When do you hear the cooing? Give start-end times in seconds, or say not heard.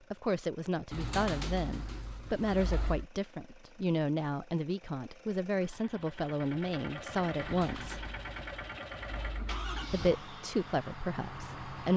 0.9-3.0, 7.3-9.9.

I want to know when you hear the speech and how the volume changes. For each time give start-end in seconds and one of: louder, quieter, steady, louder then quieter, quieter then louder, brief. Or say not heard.
0.1-8.0 steady
9.9-11.9 brief.